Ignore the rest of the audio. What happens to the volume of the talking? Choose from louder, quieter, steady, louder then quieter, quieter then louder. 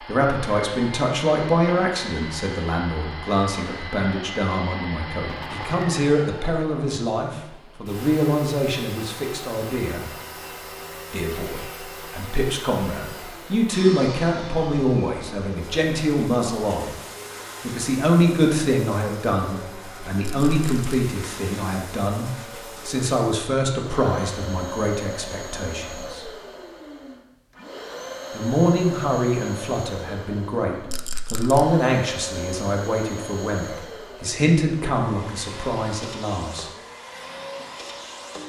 steady.